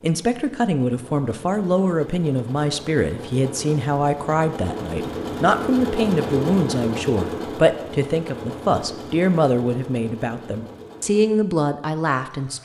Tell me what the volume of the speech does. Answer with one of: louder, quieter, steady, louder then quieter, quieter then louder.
steady.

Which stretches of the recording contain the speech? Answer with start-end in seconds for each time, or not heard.
0.0-12.5.